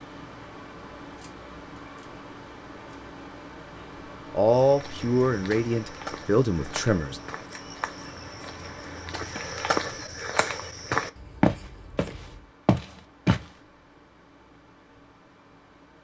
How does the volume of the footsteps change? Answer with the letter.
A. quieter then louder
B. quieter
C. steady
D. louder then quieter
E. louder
E.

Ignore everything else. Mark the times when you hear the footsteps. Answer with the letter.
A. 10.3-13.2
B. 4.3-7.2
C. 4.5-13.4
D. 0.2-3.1
C.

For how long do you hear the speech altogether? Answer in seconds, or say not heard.
3 s.